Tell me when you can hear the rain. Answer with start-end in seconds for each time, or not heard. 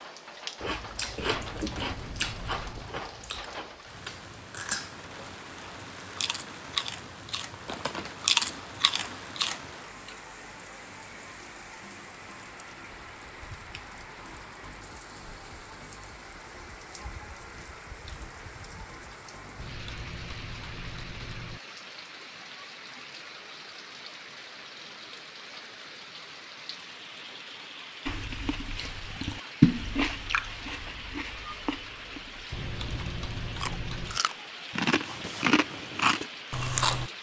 0.0-37.1.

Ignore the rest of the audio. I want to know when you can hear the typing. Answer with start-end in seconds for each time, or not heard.
1.2-2.9, 19.6-21.6, 32.5-34.2.